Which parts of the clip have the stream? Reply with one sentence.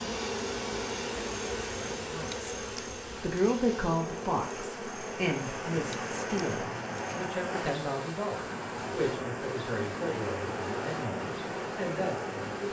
The stream can be heard from 0.0 to 12.6 s.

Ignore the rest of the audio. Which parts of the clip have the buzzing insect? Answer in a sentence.
The buzzing insect can be heard from 0.0 to 12.6 s.